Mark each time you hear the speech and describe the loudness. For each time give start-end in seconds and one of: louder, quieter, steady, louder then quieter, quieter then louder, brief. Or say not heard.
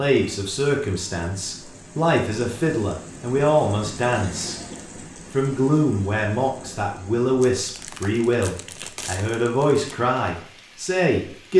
0.0-4.6 quieter then louder
5.3-11.5 steady.